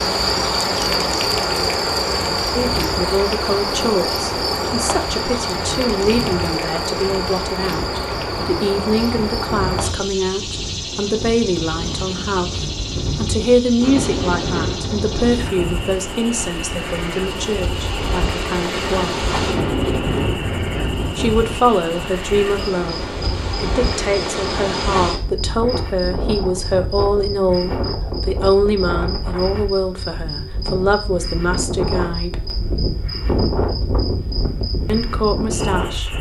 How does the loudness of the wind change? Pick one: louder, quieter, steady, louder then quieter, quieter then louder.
louder.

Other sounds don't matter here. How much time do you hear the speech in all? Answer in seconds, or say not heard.
29 s.